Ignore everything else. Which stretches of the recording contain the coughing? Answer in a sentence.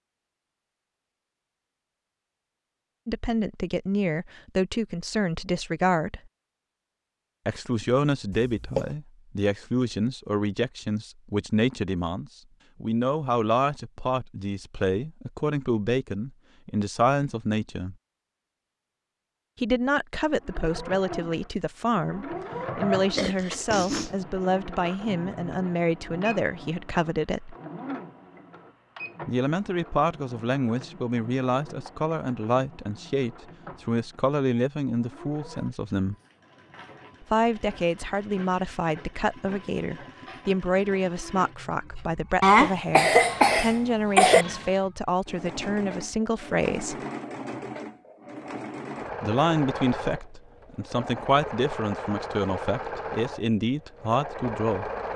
The coughing can be heard from 8.3 to 8.9 s, from 23.1 to 24.1 s and from 42.4 to 44.5 s.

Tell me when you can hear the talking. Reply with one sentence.
The talking can be heard from 3.0 to 6.2 s, from 7.5 to 17.9 s, from 19.6 to 27.6 s, from 29.2 to 36.1 s, from 37.2 to 47.0 s and from 49.2 to 54.9 s.